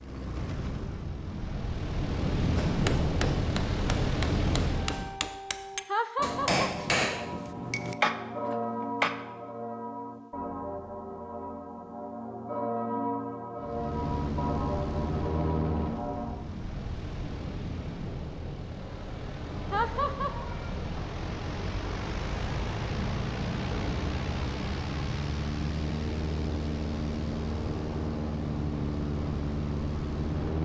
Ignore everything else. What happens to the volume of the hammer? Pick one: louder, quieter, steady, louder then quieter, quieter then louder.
louder.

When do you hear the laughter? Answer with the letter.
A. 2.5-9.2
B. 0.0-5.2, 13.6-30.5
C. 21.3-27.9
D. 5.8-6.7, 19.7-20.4
D.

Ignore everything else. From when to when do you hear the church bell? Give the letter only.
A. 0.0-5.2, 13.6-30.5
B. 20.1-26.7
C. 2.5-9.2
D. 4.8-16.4
D.